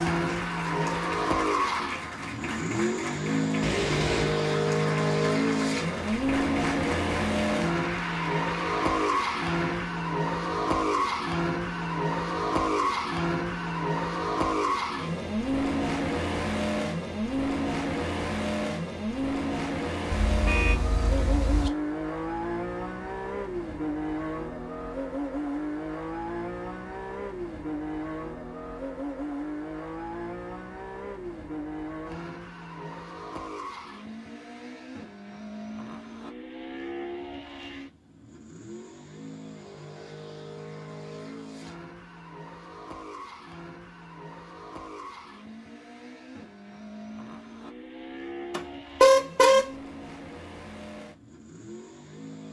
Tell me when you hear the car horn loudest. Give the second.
49 s.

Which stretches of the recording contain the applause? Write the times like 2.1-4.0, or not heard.
0.0-9.9.